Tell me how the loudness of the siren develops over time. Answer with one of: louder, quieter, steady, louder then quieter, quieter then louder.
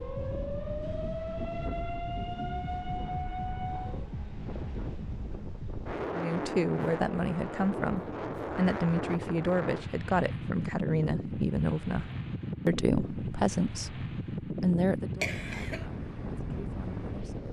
steady.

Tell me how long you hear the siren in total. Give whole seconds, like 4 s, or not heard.
4 s.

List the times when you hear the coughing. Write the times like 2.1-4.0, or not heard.
15.2-15.8.